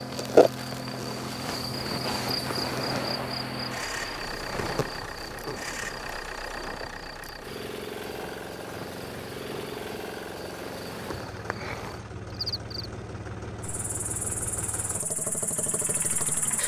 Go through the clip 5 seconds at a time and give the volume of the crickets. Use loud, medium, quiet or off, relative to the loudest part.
loud, quiet, medium, medium.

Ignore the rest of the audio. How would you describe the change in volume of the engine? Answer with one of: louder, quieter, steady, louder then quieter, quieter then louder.
steady.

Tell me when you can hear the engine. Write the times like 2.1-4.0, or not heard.
0.0-16.6.